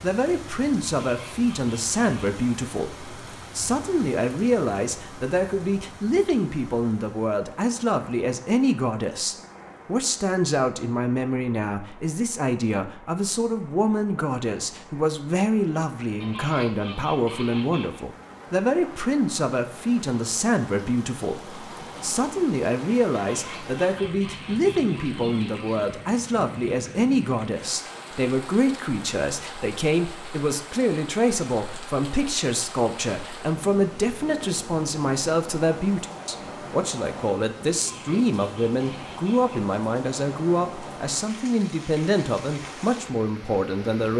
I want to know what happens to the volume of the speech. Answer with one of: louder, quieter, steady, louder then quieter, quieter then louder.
steady.